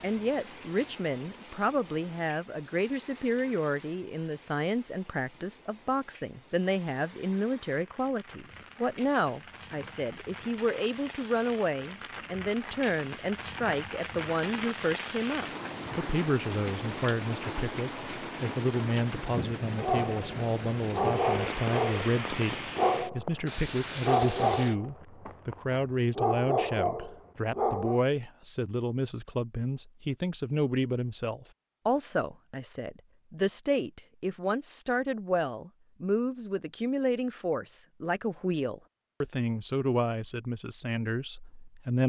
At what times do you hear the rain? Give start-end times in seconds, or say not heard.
0.0-24.8.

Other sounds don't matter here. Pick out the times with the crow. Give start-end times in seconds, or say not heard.
not heard.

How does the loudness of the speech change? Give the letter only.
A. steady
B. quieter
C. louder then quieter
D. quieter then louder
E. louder
A.